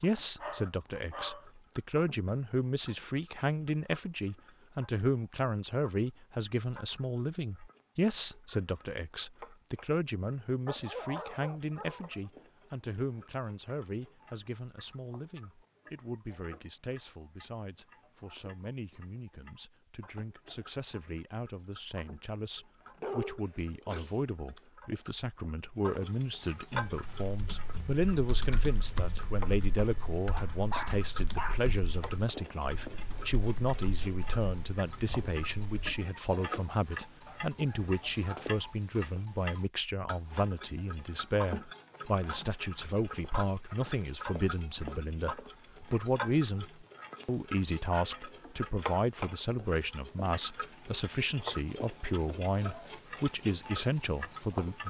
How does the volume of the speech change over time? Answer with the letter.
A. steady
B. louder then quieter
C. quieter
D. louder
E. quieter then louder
E.